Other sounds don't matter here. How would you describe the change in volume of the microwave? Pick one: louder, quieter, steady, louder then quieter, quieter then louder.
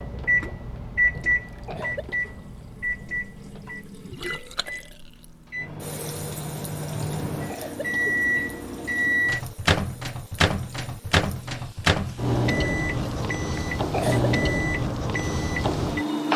quieter then louder.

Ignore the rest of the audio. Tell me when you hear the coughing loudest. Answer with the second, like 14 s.
14 s.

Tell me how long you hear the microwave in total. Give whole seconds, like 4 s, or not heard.
16 s.